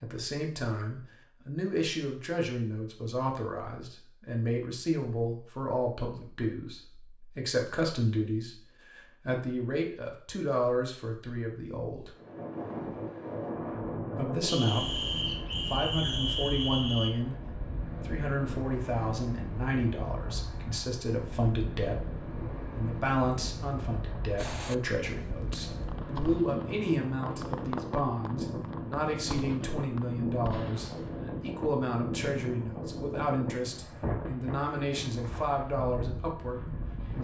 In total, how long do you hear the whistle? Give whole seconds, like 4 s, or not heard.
3 s.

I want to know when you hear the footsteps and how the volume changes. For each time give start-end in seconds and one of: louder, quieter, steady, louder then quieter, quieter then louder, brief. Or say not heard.
not heard.